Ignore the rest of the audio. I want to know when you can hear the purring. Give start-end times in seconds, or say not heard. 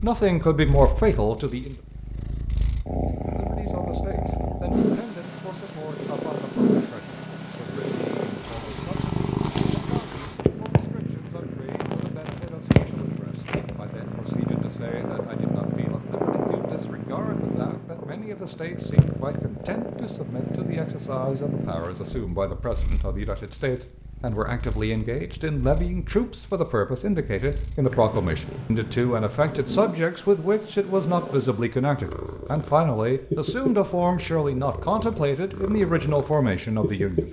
0.0-37.2.